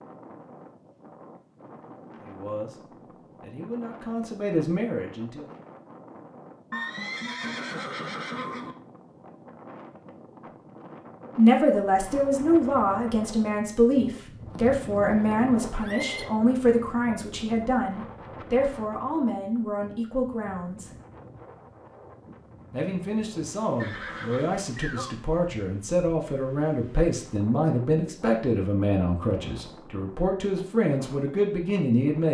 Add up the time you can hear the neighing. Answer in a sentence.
The neighing can be heard for 5 seconds in total.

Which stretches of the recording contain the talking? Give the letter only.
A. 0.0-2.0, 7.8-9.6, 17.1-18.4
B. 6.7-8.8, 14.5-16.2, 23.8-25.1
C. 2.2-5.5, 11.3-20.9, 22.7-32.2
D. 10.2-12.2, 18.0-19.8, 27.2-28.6
C.